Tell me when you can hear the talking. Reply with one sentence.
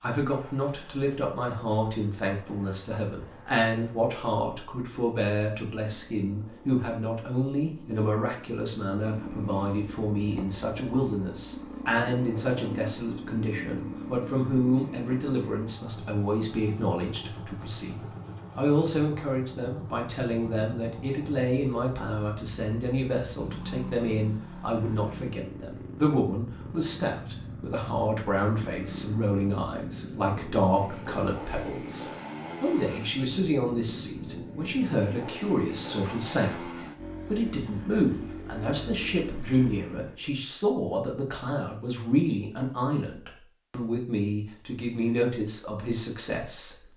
The talking can be heard from 0.0 to 46.8 s.